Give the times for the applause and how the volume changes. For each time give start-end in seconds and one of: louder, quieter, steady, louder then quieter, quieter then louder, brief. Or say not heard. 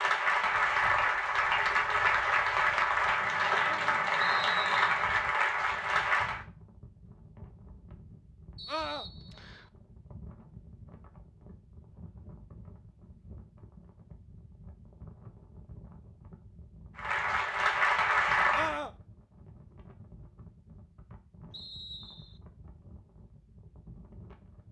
0.0-6.5 steady
16.9-18.8 brief.